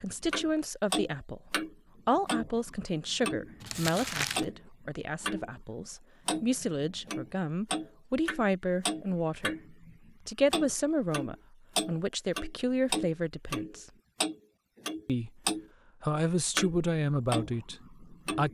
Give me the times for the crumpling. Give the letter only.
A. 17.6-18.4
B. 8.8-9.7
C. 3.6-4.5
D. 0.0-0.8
C.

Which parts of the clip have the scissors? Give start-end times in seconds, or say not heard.
not heard.